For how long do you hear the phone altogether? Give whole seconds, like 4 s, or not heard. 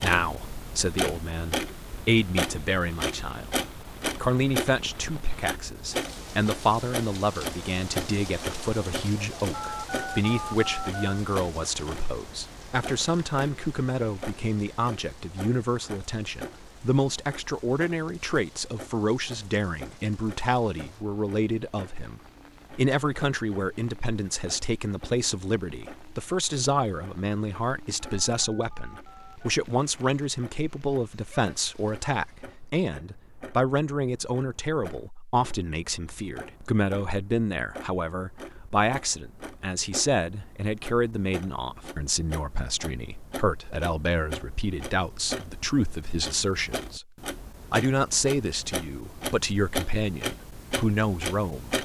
3 s.